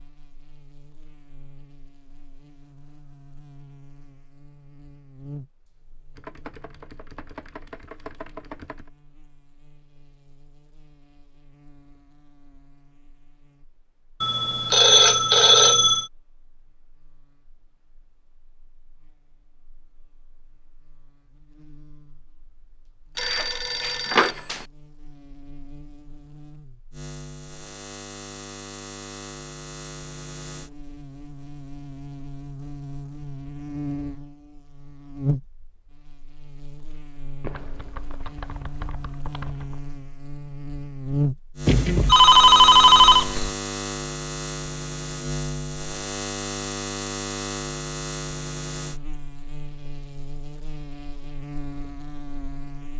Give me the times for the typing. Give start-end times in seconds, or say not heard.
6.2-8.9, 37.4-39.8.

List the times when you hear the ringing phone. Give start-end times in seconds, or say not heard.
14.2-16.1, 23.1-24.6, 41.6-43.5.